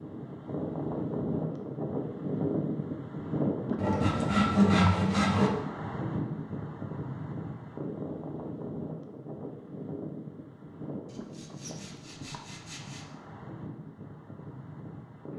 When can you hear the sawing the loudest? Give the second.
5 s.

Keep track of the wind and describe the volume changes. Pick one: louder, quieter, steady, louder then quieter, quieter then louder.
quieter.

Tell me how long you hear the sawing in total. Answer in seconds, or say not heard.
4 s.